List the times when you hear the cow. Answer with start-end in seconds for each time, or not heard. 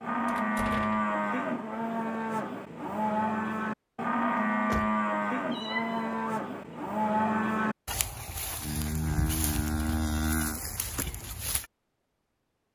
0.0-11.7.